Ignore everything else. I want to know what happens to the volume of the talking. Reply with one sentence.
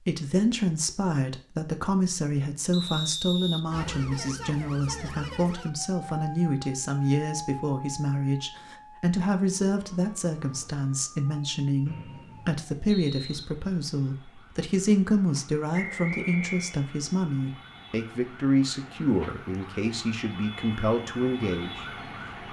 The volume of the talking stays about the same.